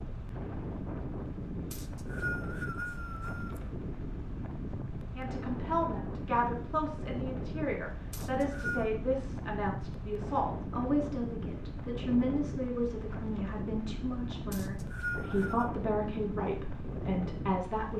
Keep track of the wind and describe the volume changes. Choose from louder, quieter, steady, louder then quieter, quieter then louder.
steady.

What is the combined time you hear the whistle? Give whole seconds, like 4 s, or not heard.
4 s.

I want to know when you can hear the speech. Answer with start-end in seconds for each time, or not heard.
5.2-17.9.